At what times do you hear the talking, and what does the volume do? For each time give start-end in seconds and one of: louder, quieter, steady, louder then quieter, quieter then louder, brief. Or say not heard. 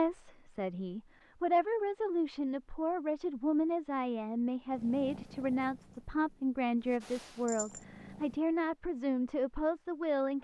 0.0-10.4 steady.